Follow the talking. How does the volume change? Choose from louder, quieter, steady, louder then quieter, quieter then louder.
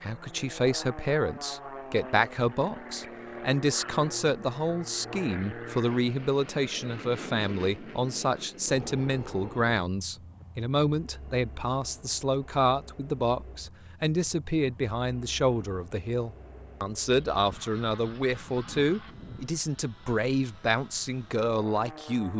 steady.